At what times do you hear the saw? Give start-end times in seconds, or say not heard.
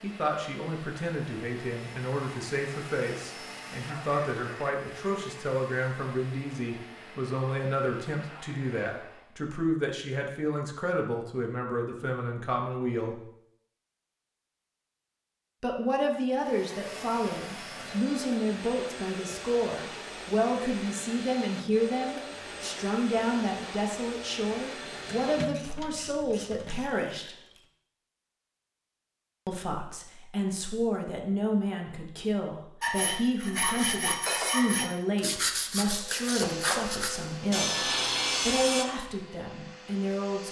32.8-38.9.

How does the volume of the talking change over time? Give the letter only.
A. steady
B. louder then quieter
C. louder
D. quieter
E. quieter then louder
A.